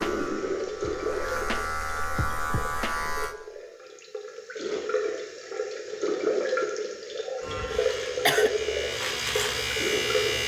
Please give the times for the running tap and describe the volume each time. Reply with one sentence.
You can hear the running tap from 0.0 to 10.4 s, getting quieter then louder.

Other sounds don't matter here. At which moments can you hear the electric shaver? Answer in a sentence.
The electric shaver can be heard from 0.0 to 3.4 s and from 7.4 to 10.4 s.